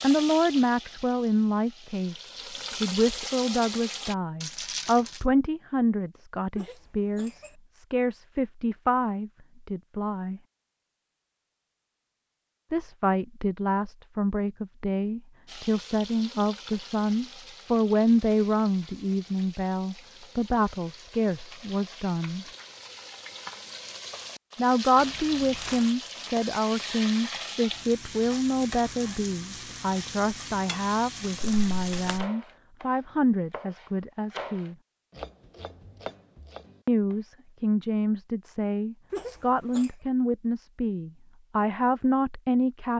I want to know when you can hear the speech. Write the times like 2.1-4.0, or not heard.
0.0-10.4, 12.7-22.4, 24.6-34.8, 36.9-42.9.